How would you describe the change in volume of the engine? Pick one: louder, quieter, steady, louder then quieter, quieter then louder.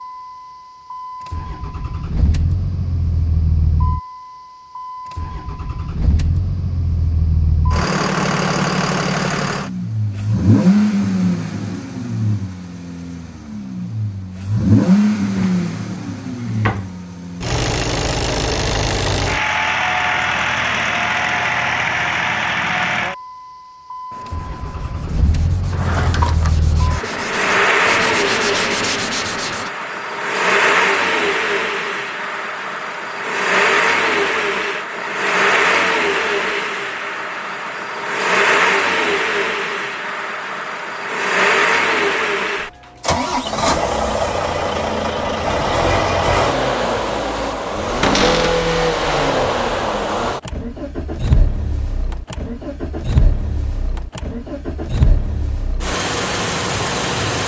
steady.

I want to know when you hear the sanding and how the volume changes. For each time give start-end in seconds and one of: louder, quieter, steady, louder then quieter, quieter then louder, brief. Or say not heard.
24.1-29.7 louder.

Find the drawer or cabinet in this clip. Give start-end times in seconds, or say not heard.
15.2-16.9, 25.6-26.6, 48.0-48.6.